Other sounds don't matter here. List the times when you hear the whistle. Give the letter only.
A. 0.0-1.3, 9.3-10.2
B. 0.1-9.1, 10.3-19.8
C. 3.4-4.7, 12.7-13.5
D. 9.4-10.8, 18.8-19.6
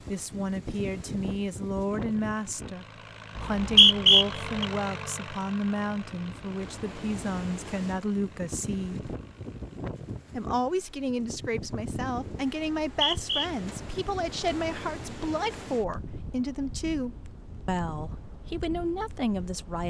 C.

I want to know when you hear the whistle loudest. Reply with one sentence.
The loudest moment of the whistle is at 4 seconds.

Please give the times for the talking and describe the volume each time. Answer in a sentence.
The talking can be heard from 0.1 to 9.1 s, at a steady volume; and from 10.3 to 19.8 s, at a steady volume.